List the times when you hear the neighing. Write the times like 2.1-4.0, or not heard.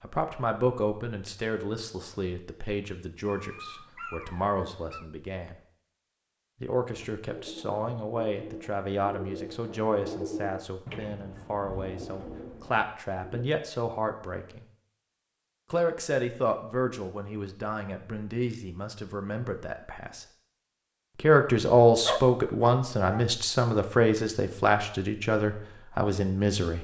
not heard.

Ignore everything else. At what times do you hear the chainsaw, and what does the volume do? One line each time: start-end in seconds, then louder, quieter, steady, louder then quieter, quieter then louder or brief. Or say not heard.
not heard.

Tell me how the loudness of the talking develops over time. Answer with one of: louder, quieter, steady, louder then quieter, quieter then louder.
louder.